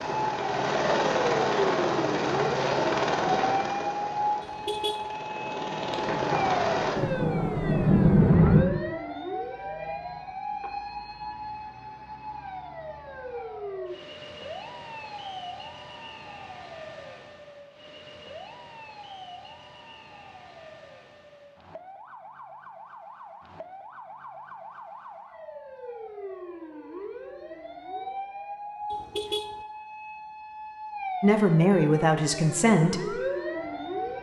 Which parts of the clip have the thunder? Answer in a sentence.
The thunder can be heard from 7.0 to 8.7 s.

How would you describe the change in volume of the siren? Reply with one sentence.
The volume of the siren goes down, then up.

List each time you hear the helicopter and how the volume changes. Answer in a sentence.
The helicopter can be heard from 0.0 to 7.0 s, getting quieter then louder.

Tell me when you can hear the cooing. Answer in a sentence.
You can't hear the cooing here.